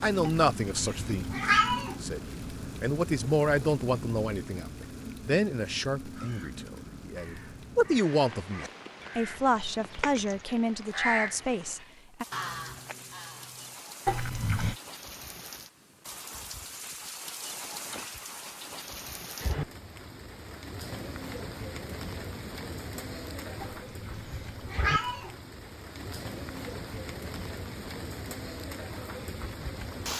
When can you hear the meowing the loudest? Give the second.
2 s.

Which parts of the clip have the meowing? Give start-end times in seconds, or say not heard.
0.2-2.0, 14.1-14.8, 23.6-25.4.